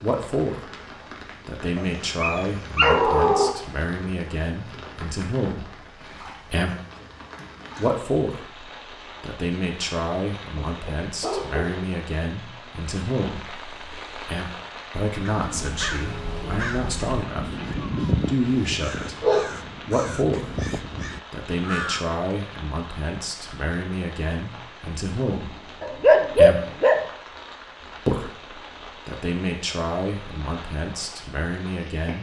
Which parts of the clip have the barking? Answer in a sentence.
You can hear the barking from 1.8 to 3.5 s, from 10.6 to 11.9 s, from 17.6 to 19.6 s and from 25.8 to 27.1 s.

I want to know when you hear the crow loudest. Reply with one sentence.
The volume of the crow peaks at 18 seconds.